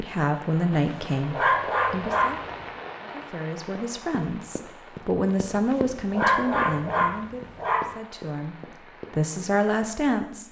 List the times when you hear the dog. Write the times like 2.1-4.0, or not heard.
0.7-2.6, 5.5-8.0.